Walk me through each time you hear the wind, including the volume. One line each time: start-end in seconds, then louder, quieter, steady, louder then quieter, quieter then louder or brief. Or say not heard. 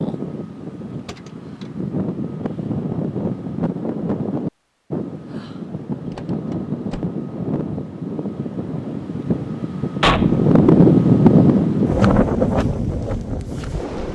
0.0-14.0 louder.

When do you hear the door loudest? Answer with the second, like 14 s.
10 s.